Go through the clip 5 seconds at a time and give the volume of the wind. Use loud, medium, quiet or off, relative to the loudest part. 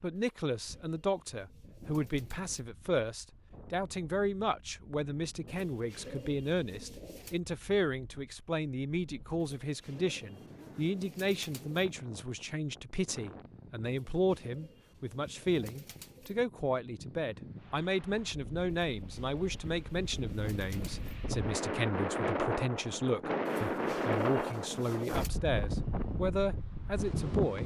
quiet, quiet, quiet, quiet, loud, loud.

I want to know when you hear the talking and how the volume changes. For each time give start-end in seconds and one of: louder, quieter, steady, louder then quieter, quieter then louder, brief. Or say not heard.
0.0-27.6 steady.